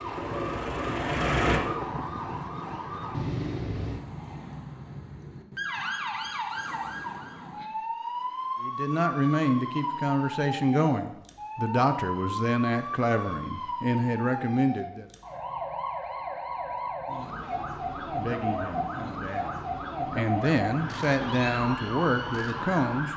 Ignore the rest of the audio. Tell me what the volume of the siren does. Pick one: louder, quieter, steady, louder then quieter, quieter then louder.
steady.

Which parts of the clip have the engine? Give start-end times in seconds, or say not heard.
0.0-1.6.